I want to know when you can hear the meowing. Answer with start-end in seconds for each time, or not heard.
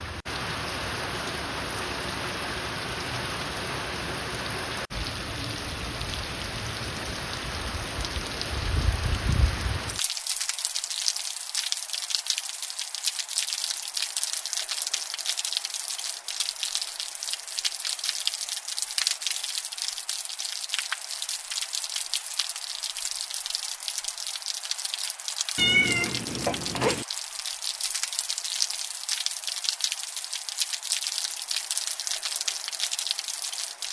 25.6-27.1.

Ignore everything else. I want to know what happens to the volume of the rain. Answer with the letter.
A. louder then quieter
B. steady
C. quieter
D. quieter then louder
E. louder
B.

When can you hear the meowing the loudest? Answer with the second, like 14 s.
26 s.